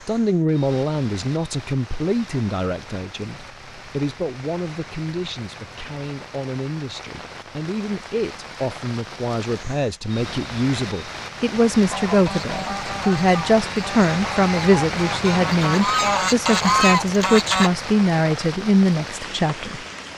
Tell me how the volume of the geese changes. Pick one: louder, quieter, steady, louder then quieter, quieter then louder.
louder.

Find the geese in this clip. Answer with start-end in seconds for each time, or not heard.
11.9-17.7.